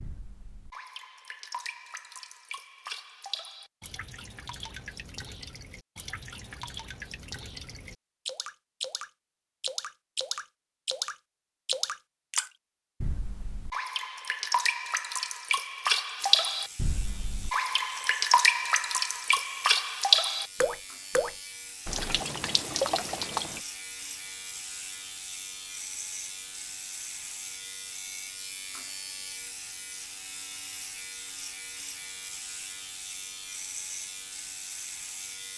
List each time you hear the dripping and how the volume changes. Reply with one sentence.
The dripping can be heard from 0.0 to 23.6 s, getting louder.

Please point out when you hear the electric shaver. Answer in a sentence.
You can hear the electric shaver from 16.1 to 35.5 s.